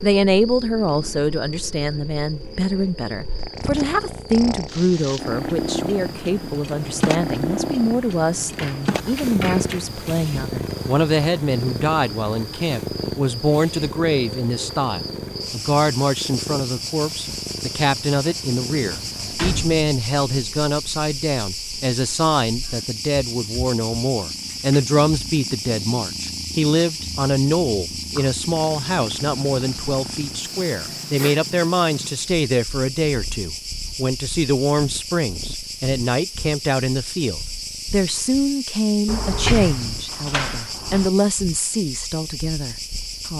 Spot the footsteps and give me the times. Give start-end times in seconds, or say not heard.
not heard.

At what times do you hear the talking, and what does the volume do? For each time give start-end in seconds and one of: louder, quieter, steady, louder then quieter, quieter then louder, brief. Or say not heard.
0.0-43.3 steady.